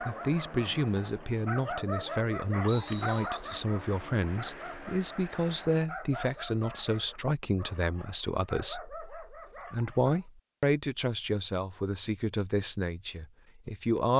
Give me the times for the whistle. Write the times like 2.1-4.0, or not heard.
2.6-3.3.